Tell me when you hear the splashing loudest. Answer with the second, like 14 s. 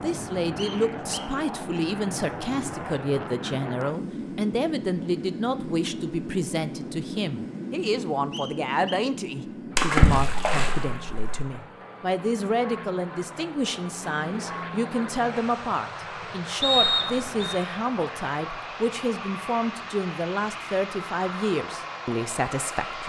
10 s.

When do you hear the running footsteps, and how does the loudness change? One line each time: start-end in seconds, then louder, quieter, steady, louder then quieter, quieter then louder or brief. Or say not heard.
not heard.